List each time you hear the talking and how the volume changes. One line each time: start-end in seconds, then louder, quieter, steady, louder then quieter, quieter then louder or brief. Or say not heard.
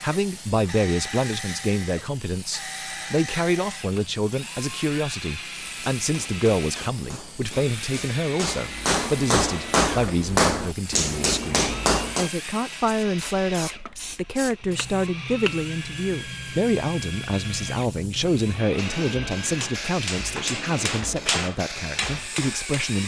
0.0-23.0 steady.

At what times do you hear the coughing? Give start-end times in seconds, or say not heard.
not heard.